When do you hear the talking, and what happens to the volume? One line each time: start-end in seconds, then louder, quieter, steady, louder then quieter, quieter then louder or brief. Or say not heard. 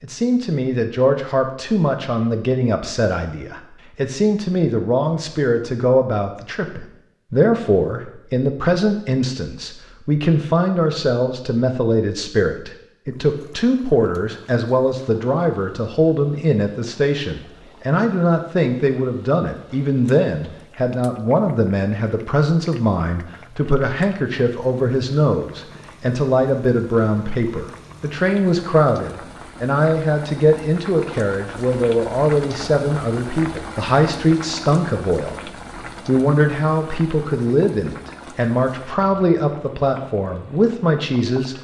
0.0-41.5 steady.